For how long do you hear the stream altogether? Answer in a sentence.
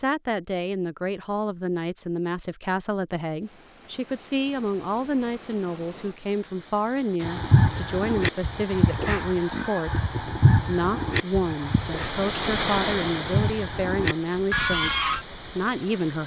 You can hear the stream for 13 seconds altogether.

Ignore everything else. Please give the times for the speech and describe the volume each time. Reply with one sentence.
You can hear the speech from 0.0 to 16.2 s, at a steady volume.